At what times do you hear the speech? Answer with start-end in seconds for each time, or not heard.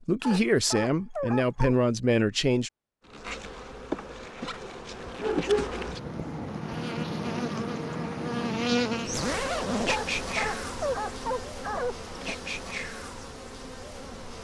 0.0-2.7.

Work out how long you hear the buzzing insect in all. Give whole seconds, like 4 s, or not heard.
11 s.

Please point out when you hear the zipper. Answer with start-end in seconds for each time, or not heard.
9.1-9.9.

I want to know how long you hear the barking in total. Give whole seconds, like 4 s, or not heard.
5 s.